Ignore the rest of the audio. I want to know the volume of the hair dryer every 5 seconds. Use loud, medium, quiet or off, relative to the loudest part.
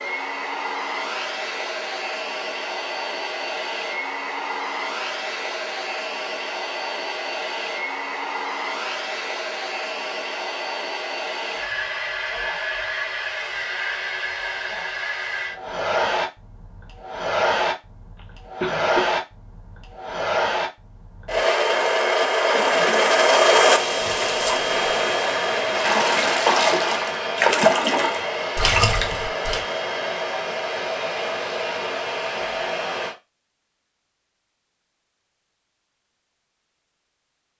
medium, medium, medium, medium, loud, medium, medium, off.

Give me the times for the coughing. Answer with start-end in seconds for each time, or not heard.
18.1-19.0.